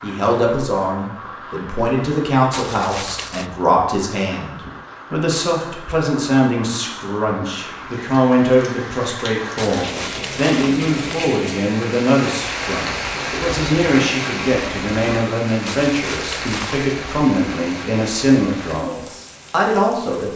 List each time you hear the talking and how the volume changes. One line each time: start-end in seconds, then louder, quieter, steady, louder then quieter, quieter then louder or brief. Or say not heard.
0.0-20.3 steady.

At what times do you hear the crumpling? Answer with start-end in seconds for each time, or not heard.
2.5-3.5, 9.6-11.3, 15.7-16.9.